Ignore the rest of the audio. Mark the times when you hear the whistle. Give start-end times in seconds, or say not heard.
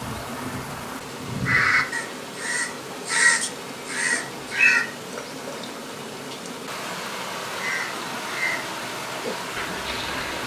4.1-4.8.